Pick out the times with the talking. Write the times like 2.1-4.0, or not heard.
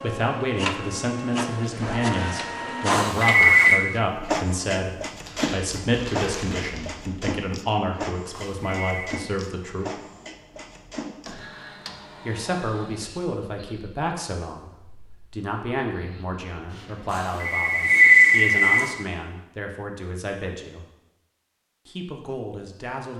0.0-9.9, 12.2-14.7, 15.3-20.9, 21.9-23.1.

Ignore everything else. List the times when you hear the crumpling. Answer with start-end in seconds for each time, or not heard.
5.0-7.2.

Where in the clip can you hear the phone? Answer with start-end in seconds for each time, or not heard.
2.9-3.8, 8.3-9.2, 17.1-18.9.